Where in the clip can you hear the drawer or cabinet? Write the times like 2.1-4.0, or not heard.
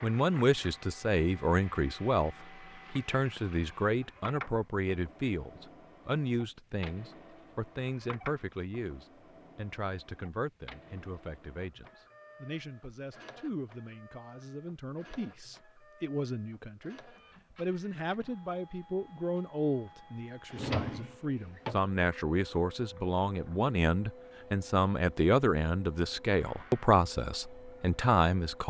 20.5-21.8.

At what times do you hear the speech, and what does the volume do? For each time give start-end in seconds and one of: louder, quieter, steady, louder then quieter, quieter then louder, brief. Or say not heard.
0.0-28.6 quieter then louder.